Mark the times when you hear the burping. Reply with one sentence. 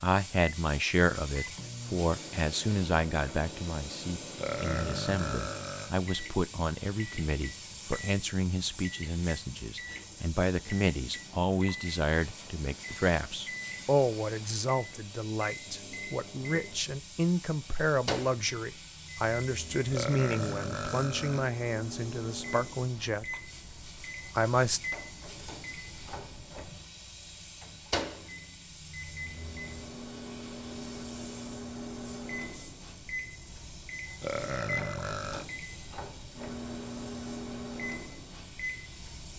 You can hear the burping from 4.3 to 5.9 s, from 19.9 to 21.4 s and from 34.2 to 35.5 s.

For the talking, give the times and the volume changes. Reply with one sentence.
You can hear the talking from 0.0 to 23.4 s, at a steady volume; and briefly from 24.4 to 24.8 s.